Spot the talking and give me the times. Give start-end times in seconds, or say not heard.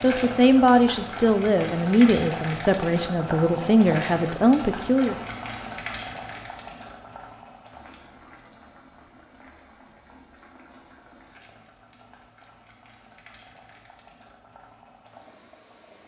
0.0-5.2.